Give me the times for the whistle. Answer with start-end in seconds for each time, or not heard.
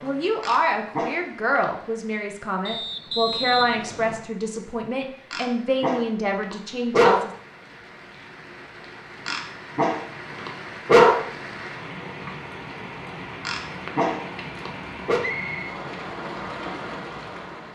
2.6-4.3, 15.2-15.8.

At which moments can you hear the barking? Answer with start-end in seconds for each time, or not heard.
0.4-1.6, 5.3-7.2, 9.2-11.2, 13.4-15.2.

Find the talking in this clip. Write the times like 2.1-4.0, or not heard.
0.0-7.3.